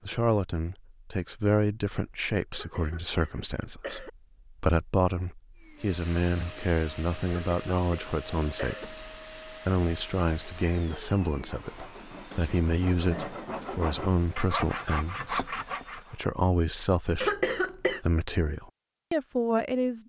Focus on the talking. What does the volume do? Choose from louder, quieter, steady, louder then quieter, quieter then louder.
steady.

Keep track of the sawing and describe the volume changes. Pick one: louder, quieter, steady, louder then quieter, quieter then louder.
louder.